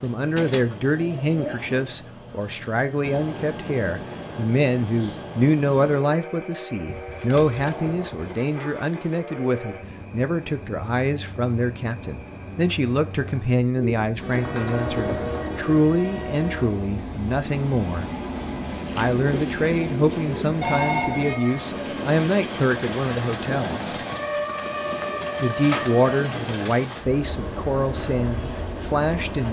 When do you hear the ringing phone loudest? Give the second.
21 s.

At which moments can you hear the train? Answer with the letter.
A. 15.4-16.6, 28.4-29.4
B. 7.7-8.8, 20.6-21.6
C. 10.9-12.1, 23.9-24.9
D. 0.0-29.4
D.